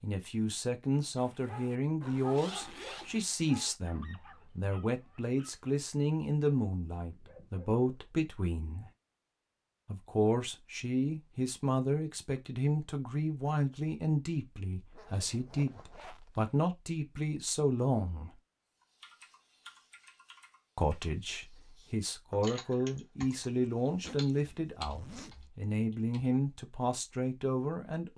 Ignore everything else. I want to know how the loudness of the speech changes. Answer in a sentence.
The loudness of the speech stays about the same.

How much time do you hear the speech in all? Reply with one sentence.
You can hear the speech for 25 seconds altogether.